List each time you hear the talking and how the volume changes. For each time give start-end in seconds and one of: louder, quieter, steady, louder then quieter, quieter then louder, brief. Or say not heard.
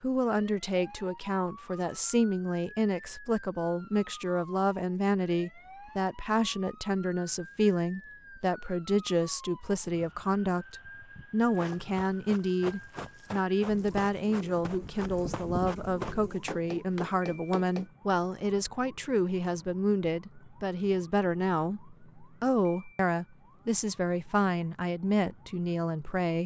0.0-26.4 steady.